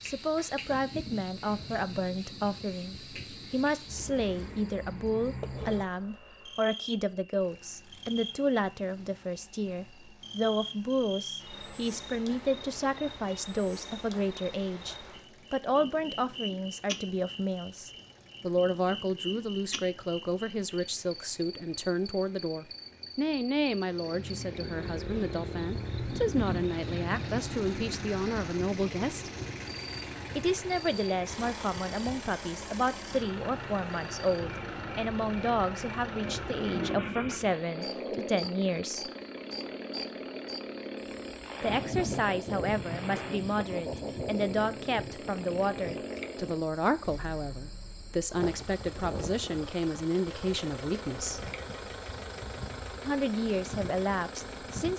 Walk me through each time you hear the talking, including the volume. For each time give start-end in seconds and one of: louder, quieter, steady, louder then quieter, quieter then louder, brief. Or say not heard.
0.0-29.3 steady
30.4-39.1 steady
41.6-51.5 steady
53.0-54.9 brief.